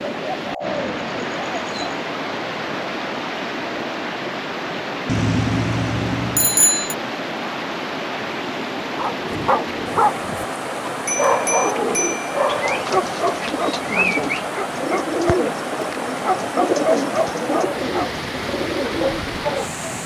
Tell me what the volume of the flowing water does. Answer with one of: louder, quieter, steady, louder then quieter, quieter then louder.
steady.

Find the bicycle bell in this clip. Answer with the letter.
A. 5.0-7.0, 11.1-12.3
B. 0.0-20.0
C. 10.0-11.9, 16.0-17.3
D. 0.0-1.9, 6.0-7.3
A.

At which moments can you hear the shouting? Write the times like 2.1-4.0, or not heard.
not heard.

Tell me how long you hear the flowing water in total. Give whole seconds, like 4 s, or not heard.
20 s.